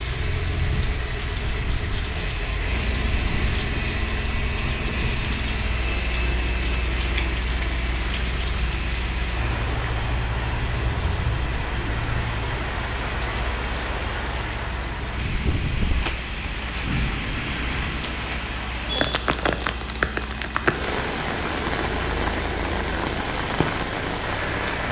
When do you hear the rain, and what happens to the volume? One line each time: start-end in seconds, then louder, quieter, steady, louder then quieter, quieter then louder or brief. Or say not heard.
0.0-24.8 louder.